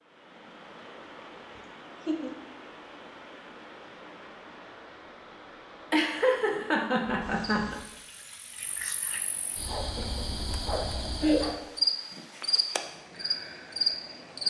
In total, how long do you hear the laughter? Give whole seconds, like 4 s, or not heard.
4 s.